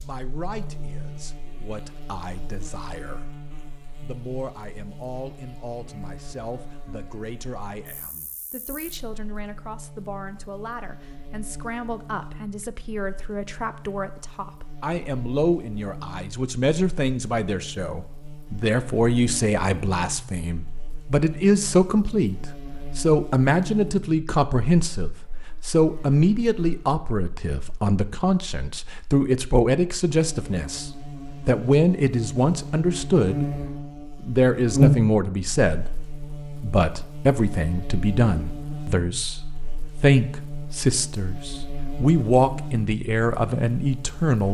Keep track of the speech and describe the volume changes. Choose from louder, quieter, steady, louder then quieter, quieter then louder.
louder.